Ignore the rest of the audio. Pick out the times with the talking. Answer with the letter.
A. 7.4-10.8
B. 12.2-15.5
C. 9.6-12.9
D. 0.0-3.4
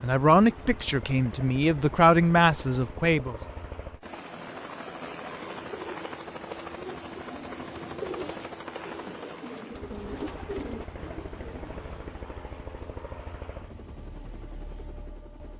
D.